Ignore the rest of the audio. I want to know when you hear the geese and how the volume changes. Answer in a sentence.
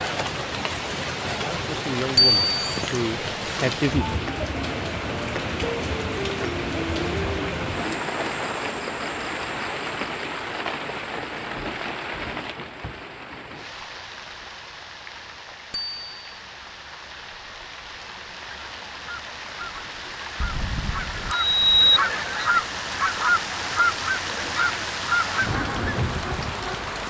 You can hear the geese from 18.6 to 26.1 s, getting louder.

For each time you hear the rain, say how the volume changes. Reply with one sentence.
You can hear the rain from 0.0 to 27.0 s, getting quieter then louder.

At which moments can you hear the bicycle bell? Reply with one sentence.
The bicycle bell can be heard from 2.1 to 2.8 s, from 15.7 to 16.4 s and from 20.4 to 22.0 s.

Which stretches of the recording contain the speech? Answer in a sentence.
The speech can be heard from 1.4 to 4.2 s.